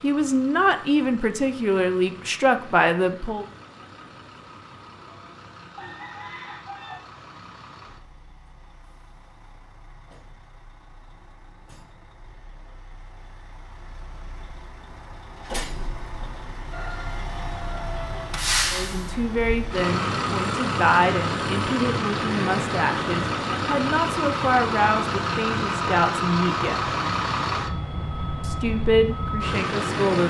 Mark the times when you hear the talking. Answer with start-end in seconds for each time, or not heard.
0.0-3.5, 18.7-26.9, 28.4-30.2.